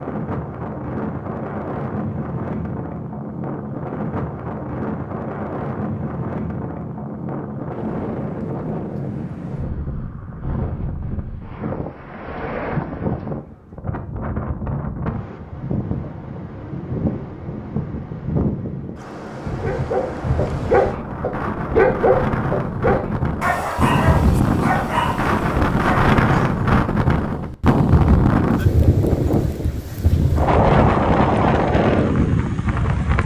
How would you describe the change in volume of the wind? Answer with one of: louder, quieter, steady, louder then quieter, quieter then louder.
louder.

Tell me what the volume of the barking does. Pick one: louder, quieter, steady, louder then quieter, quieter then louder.
quieter.